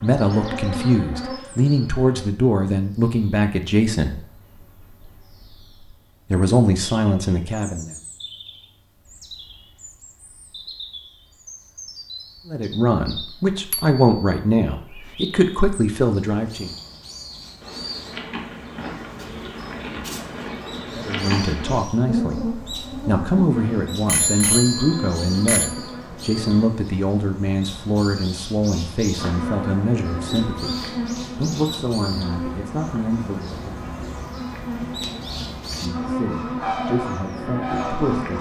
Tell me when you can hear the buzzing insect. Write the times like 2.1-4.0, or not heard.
0.0-2.2, 17.6-26.7, 29.1-38.3.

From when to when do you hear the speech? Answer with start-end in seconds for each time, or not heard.
0.0-4.2, 6.3-7.9, 12.4-16.7, 20.9-33.8, 35.7-38.3.